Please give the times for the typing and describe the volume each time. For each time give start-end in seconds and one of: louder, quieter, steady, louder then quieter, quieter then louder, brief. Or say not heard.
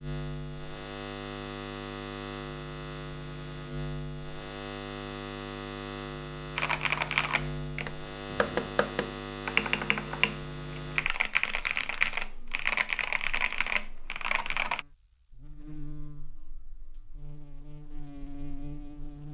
6.5-14.8 steady.